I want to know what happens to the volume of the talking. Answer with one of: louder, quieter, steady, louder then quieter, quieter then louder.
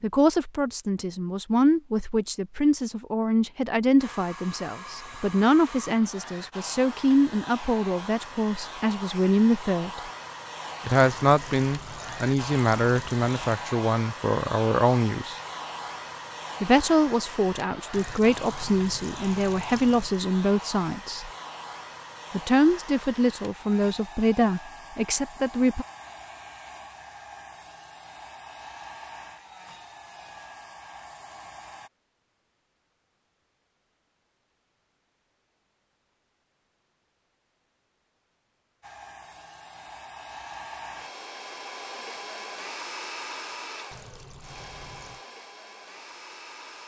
steady.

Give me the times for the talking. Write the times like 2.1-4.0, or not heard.
0.0-10.0, 10.8-15.3, 16.6-21.3, 22.3-25.9.